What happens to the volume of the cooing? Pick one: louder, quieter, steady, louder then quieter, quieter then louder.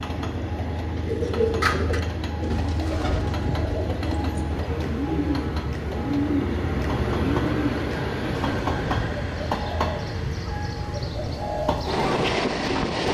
quieter.